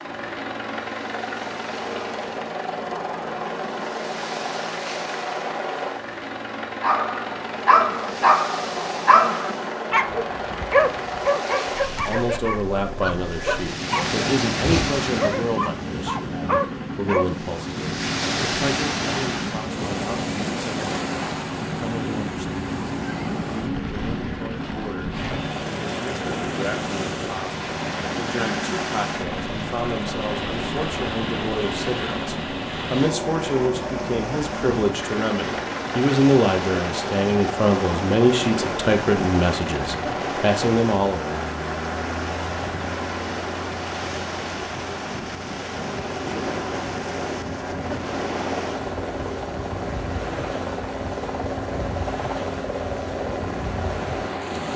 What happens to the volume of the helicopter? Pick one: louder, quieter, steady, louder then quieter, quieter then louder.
steady.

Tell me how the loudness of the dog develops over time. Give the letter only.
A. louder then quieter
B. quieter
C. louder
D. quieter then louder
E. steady
B.